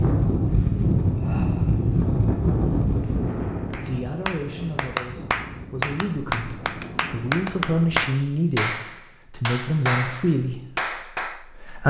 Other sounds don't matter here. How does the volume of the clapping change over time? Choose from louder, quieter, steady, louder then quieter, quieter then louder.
steady.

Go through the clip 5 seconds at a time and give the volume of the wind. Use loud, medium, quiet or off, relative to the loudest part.
loud, quiet, off.